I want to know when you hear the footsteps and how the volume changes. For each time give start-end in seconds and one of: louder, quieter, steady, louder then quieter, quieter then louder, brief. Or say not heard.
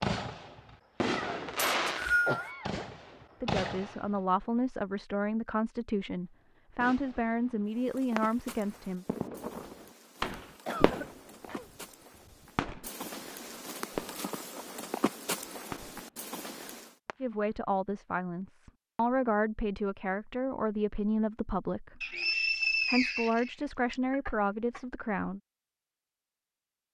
7.7-16.9 quieter then louder.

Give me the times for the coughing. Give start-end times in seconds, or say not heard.
2.2-2.9, 10.7-11.7, 24.1-24.9.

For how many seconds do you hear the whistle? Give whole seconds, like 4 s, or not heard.
3 s.